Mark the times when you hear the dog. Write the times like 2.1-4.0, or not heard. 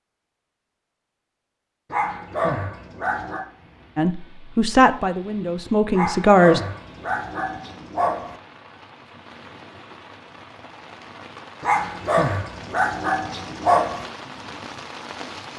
1.9-3.5, 5.9-8.3, 11.6-14.1.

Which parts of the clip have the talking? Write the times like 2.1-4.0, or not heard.
4.0-6.6.